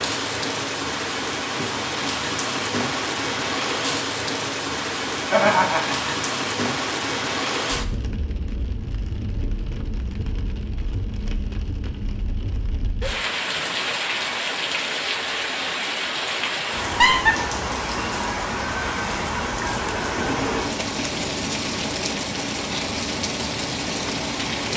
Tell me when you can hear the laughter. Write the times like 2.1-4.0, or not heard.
5.3-6.3, 16.8-17.4.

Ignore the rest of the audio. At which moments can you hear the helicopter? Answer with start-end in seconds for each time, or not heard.
not heard.